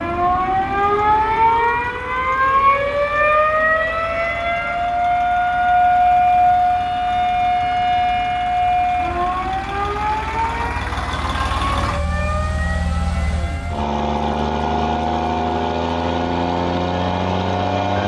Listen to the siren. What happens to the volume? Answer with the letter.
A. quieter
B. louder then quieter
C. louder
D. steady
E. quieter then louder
A.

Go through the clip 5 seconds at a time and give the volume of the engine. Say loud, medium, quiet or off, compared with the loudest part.
quiet, quiet, loud, loud.